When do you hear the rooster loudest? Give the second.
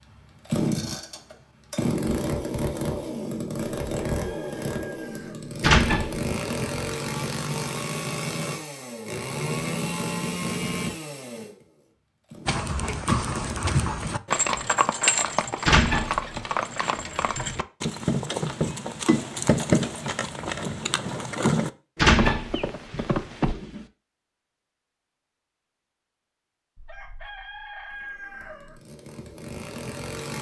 28 s.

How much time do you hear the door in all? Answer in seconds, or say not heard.
3 s.